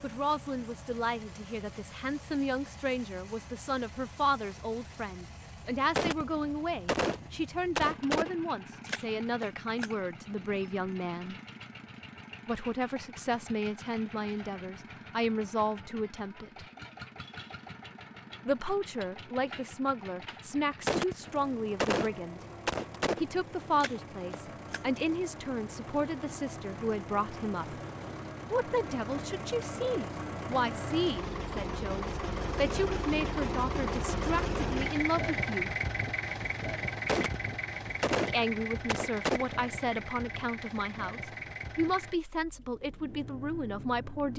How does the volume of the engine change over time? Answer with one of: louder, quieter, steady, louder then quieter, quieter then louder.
louder.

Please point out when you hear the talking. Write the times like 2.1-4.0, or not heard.
0.0-11.3, 12.4-16.6, 18.4-22.4, 23.2-27.8, 28.5-35.8, 38.2-44.3.